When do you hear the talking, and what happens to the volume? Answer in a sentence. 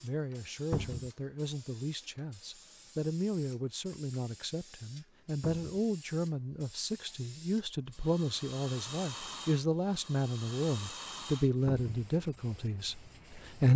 The talking can be heard from 0.0 to 13.7 s, getting louder.